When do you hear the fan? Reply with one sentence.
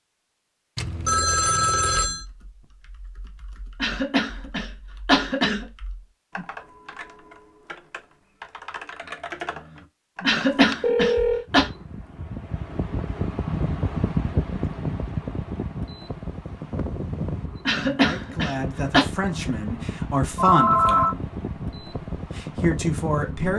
You can hear the fan from 11.4 to 23.5 s.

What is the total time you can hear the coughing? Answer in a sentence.
You can hear the coughing for 5 seconds altogether.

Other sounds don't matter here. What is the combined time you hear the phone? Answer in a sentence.
The phone can be heard for 3 seconds in total.